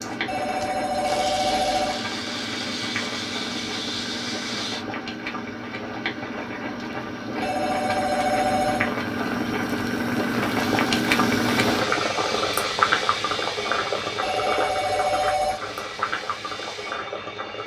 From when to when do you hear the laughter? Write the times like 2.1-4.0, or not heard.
not heard.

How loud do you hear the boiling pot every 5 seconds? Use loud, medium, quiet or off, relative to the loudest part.
medium, medium, loud, medium.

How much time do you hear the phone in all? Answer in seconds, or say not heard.
5 s.